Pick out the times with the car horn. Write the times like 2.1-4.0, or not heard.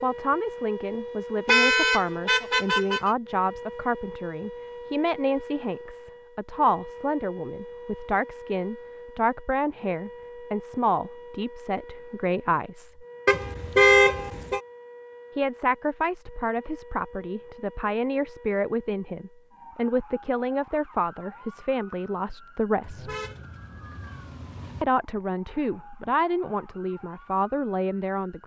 1.4-3.1, 13.2-14.6, 22.8-24.9.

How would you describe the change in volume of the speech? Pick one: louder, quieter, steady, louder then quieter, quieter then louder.
steady.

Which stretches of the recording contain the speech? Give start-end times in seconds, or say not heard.
0.0-13.1, 15.3-23.1, 24.8-28.4.